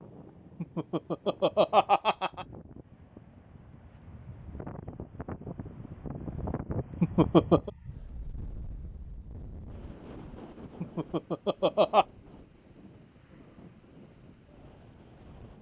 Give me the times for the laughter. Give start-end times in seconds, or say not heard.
0.6-2.5, 7.0-7.7, 10.8-12.1.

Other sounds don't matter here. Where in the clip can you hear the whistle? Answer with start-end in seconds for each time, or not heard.
not heard.